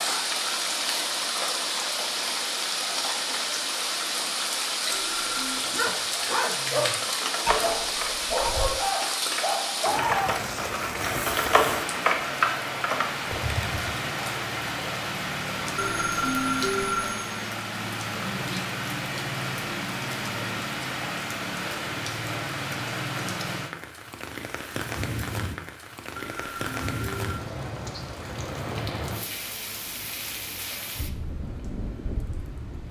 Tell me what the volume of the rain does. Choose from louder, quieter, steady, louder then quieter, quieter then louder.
quieter.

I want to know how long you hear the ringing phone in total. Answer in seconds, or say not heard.
4 s.